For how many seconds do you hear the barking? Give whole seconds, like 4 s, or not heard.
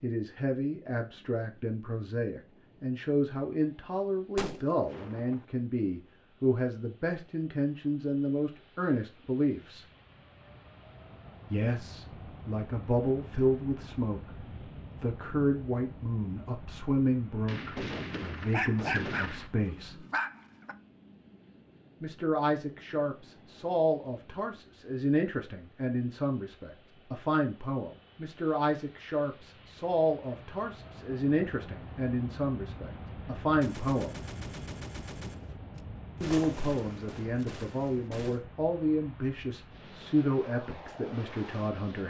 3 s.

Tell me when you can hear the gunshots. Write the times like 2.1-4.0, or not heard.
4.3-5.5, 17.4-19.5, 33.6-38.4.